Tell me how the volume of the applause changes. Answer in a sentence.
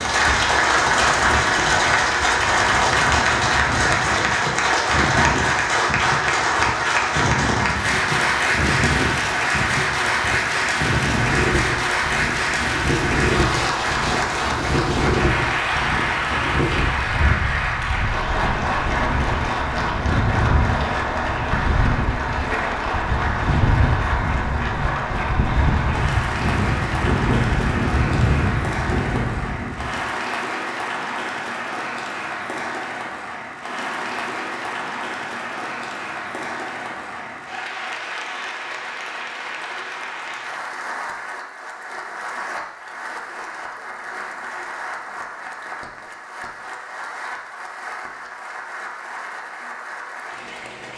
The volume of the applause goes down.